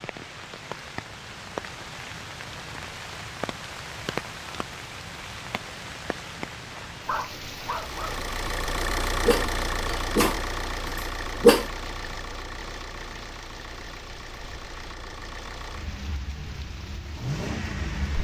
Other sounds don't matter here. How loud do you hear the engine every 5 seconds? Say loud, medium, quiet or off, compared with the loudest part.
off, loud, medium, medium.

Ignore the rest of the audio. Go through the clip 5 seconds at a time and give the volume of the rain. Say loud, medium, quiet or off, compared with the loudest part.
loud, loud, medium, medium.